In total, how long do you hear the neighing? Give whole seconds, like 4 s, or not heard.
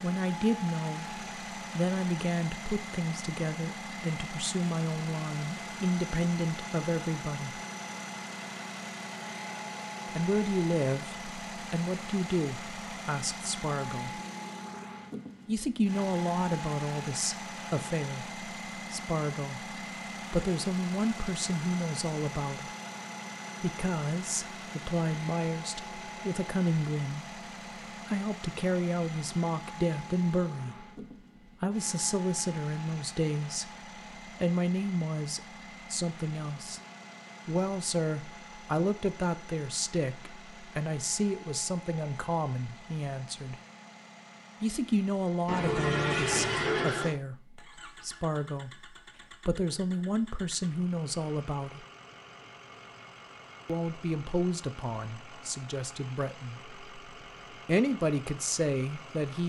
2 s.